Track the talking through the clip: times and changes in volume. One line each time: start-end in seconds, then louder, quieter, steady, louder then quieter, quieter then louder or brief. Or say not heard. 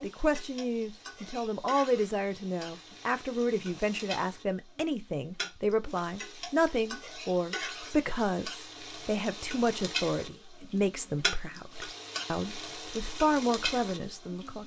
0.0-14.6 steady.